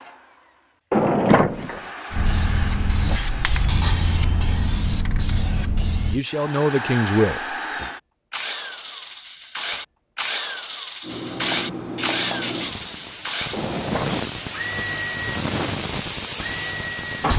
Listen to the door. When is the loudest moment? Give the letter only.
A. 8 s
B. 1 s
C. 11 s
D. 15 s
B.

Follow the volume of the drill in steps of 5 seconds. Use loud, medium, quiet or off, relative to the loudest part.
medium, loud, loud, loud.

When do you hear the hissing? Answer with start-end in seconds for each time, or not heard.
2.1-6.2, 11.0-17.3.